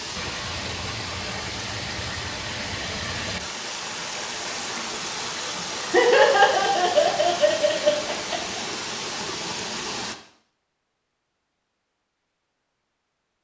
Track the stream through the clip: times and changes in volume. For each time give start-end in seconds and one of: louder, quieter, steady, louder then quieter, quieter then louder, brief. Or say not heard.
0.0-10.2 steady.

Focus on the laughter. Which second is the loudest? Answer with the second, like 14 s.
6 s.